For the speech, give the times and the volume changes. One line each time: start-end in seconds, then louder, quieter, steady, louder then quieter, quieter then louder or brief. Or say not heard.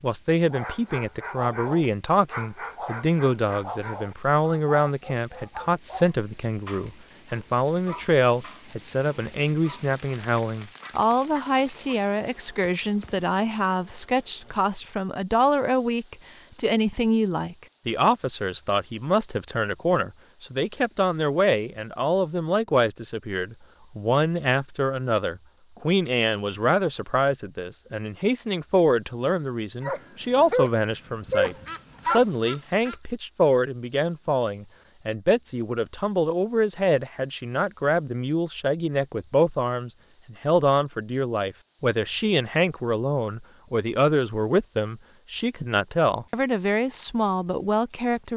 0.0-48.3 steady.